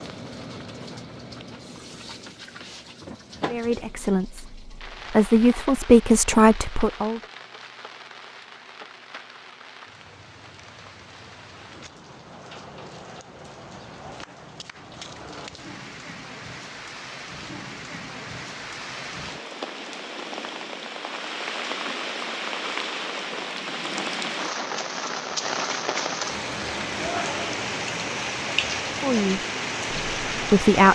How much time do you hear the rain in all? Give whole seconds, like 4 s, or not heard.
31 s.